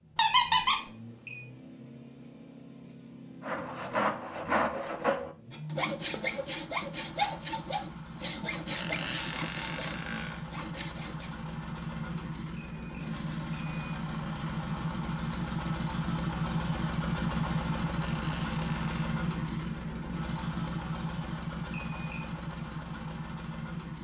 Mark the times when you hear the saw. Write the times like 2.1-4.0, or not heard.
3.4-11.3.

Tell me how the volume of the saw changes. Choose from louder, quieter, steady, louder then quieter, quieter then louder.
quieter.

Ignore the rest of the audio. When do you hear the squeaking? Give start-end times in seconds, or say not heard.
0.1-0.8, 8.7-10.4, 17.9-19.1.